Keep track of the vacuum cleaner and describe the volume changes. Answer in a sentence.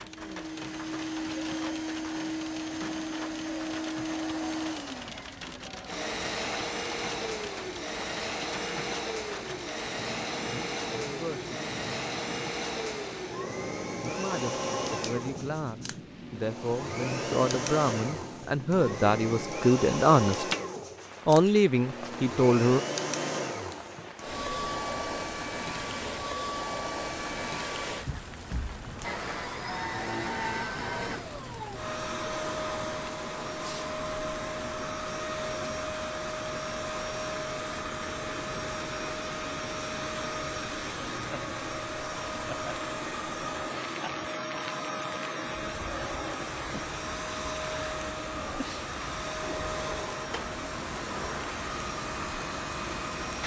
The loudness of the vacuum cleaner stays about the same.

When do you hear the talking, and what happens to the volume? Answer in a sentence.
You can hear the talking briefly from 11.1 to 11.6 s; from 14.1 to 20.4 s, getting louder; and briefly from 21.2 to 22.8 s.